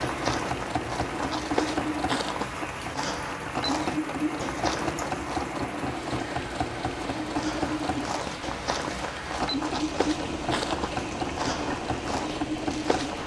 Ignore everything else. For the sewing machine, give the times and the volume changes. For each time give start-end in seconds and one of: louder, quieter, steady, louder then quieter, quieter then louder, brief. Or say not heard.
0.0-13.2 steady.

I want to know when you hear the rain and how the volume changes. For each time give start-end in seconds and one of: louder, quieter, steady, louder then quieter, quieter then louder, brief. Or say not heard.
0.0-13.2 steady.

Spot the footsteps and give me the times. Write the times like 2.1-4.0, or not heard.
0.0-5.5, 7.2-13.2.